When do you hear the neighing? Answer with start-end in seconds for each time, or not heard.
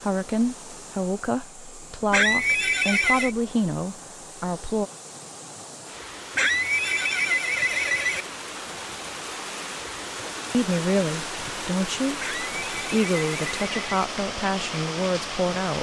2.1-3.4, 6.3-8.2, 12.2-14.1.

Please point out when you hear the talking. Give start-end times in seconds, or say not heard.
0.0-4.8, 10.5-15.7.